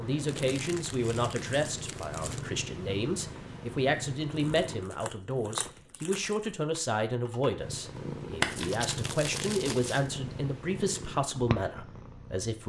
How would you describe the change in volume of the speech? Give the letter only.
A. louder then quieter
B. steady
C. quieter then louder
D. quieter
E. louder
B.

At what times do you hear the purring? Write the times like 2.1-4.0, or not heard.
0.0-4.9, 7.5-12.6.